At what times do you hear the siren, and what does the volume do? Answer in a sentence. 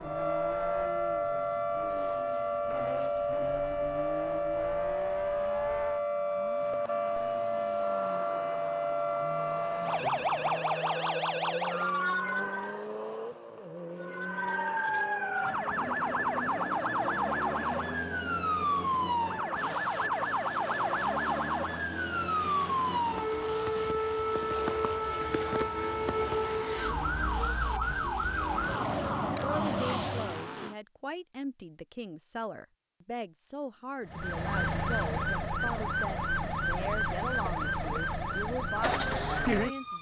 The siren can be heard from 0.0 to 12.8 s, at a steady volume; from 14.0 to 30.5 s, at a steady volume; and from 34.0 to 39.9 s, at a steady volume.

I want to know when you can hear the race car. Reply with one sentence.
The race car can be heard from 0.0 to 30.8 s.